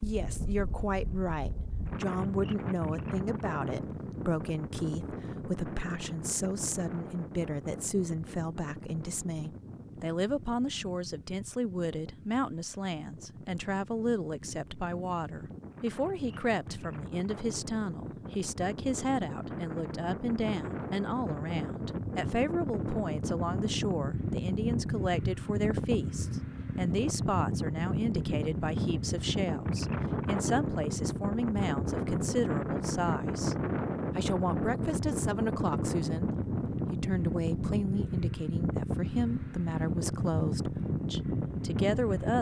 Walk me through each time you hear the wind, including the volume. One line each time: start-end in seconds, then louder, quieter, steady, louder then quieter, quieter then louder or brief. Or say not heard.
0.0-42.3 quieter then louder.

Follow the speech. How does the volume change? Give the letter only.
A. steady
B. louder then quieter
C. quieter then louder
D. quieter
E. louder
A.